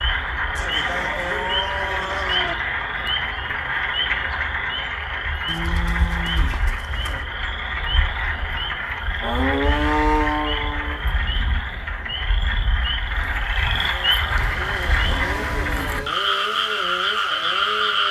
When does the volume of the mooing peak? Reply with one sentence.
The loudest moment of the mooing is at 10 seconds.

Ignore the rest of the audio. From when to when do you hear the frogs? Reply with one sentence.
The frogs can be heard from 0.0 to 18.0 s.